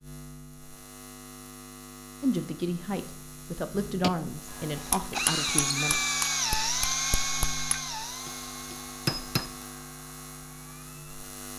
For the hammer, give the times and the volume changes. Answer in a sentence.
You can hear the hammer from 4.0 to 9.6 s, getting quieter then louder.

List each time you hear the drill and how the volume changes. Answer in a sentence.
The drill can be heard from 4.8 to 11.2 s, getting quieter.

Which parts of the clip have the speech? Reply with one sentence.
You can hear the speech from 2.2 to 6.2 s.